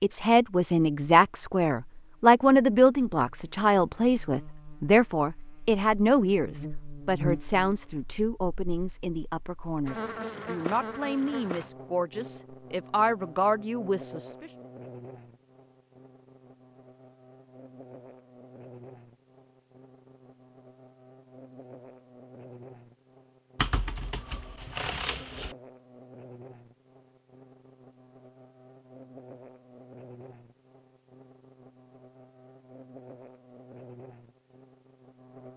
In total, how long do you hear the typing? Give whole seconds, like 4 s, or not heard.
2 s.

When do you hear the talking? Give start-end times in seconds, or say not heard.
0.0-14.5.